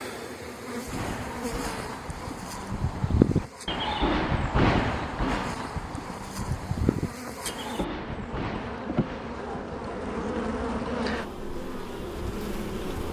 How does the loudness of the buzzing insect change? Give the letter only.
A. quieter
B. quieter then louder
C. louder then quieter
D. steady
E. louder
B.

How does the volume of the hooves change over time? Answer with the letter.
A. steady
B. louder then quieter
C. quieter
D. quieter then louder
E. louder
B.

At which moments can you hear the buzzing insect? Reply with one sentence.
You can hear the buzzing insect from 0.0 to 13.0 s.